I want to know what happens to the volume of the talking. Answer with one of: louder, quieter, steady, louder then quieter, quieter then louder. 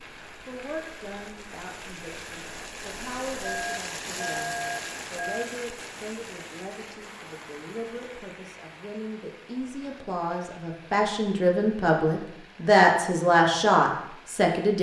louder.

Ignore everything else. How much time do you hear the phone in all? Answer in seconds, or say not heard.
2 s.